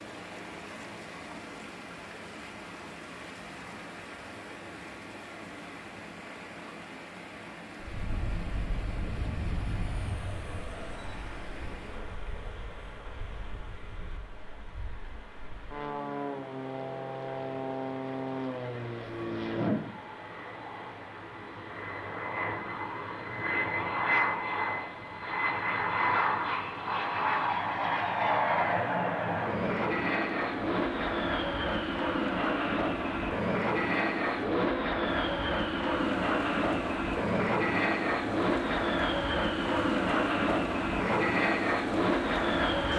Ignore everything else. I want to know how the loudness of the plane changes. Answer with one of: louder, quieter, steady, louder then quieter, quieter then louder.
louder.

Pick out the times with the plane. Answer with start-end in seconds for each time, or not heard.
7.8-42.9.